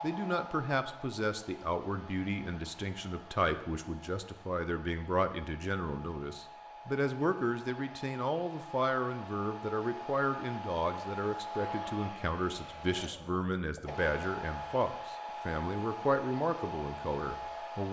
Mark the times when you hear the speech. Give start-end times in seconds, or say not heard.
0.0-17.8.